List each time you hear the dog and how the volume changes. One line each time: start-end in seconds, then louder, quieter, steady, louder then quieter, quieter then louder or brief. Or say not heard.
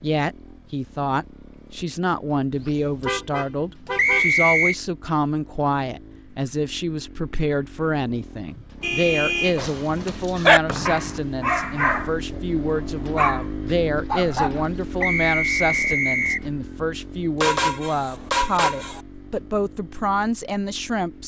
9.6-15.1 quieter.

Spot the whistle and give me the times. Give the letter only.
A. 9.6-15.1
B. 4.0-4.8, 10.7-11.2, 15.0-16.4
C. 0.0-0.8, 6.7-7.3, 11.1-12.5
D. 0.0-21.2
B.